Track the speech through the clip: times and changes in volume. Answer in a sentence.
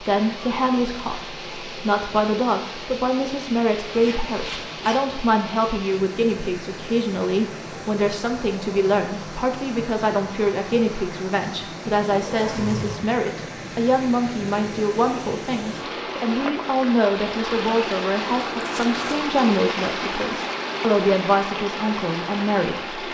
You can hear the speech from 0.0 to 23.0 s, at a steady volume.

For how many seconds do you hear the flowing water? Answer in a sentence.
The flowing water can be heard for 23 seconds in total.